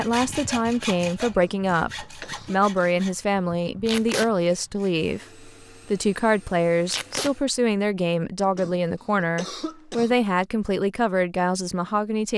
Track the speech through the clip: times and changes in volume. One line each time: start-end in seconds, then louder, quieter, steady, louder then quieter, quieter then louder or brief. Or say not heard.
0.0-12.3 steady.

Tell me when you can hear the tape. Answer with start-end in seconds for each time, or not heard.
3.9-4.3, 6.8-7.3.